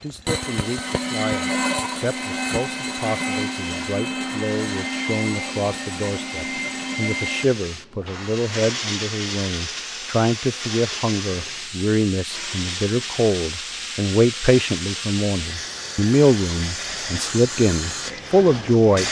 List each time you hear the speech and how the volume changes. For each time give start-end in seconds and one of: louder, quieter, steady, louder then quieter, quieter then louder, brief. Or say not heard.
0.0-19.0 louder.